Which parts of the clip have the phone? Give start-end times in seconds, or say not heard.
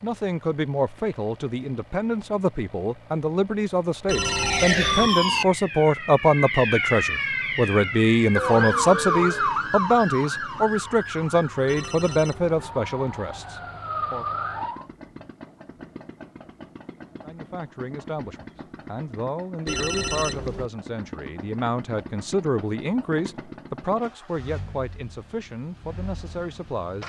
4.0-5.1, 11.7-12.6, 19.6-20.7.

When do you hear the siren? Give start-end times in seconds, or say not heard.
4.1-14.8.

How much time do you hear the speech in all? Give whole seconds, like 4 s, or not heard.
24 s.